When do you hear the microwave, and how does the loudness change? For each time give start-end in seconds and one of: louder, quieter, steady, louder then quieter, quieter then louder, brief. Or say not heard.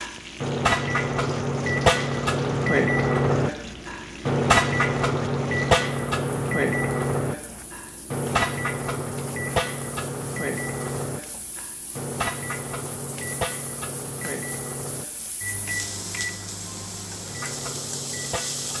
0.0-18.7 quieter.